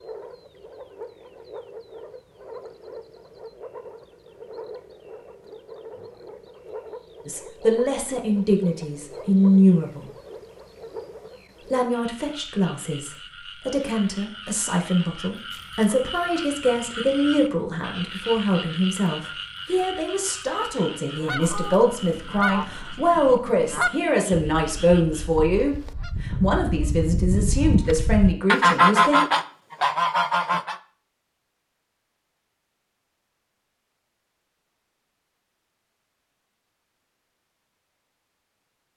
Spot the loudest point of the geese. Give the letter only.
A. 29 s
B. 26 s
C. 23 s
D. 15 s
A.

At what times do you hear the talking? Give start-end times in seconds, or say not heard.
7.2-10.1, 11.7-29.2.